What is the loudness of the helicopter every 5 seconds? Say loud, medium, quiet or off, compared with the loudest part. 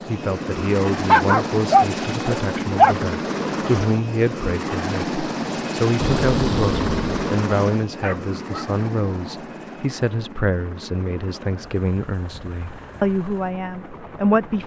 loud, loud, quiet.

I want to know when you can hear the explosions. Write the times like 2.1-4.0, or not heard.
6.0-7.2.